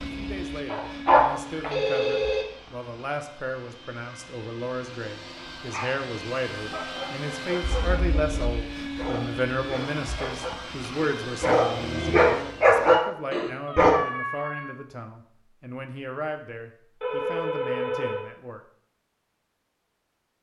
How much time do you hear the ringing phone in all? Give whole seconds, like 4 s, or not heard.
3 s.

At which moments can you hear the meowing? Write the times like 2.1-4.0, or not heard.
13.7-14.8.